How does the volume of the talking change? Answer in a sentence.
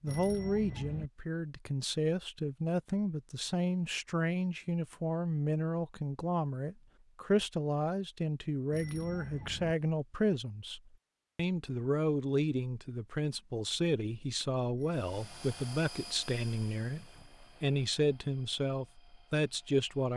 The volume of the talking stays about the same.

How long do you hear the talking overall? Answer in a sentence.
The talking can be heard for 20 seconds in total.